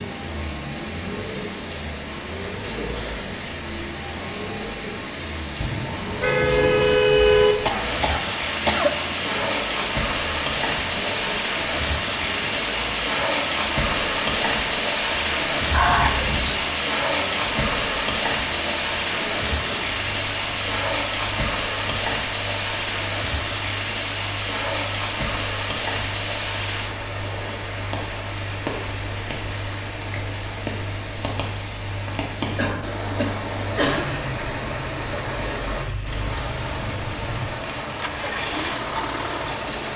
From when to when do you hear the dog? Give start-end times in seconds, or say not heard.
not heard.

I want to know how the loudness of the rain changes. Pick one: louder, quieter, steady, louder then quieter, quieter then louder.
louder then quieter.